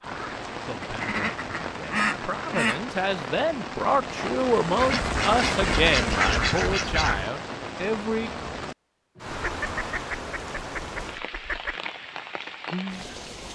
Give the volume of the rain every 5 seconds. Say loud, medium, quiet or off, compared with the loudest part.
loud, loud, medium.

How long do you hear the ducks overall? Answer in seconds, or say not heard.
7 s.